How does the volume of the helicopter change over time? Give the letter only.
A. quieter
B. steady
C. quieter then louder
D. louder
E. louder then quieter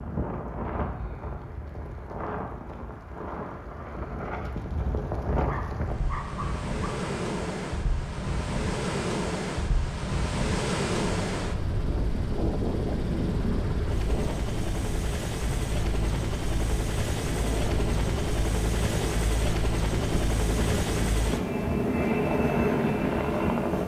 D.